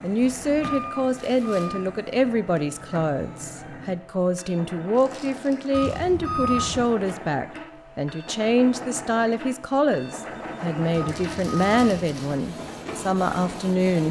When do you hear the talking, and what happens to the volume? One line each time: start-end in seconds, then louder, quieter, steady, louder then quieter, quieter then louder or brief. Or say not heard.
0.0-14.0 steady.